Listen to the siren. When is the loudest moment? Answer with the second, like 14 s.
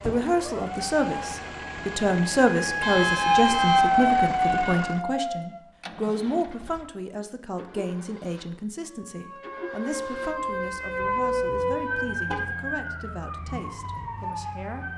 4 s.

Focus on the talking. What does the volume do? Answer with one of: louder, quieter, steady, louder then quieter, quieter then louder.
quieter.